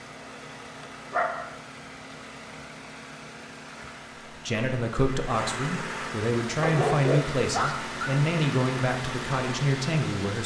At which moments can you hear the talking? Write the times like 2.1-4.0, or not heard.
4.3-10.4.